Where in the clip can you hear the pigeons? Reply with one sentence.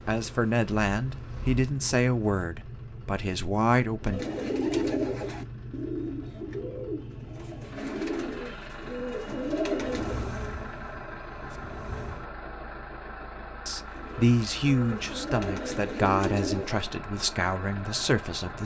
You can hear the pigeons from 4.0 to 10.3 s and from 13.9 to 16.9 s.